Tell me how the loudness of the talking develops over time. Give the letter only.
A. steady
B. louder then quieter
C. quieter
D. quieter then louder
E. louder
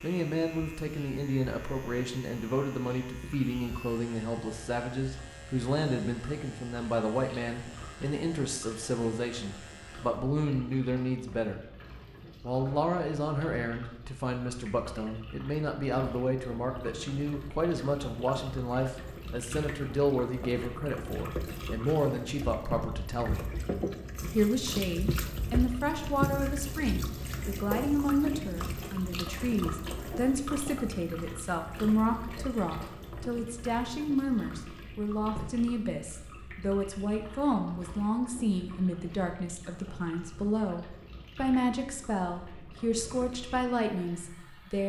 A.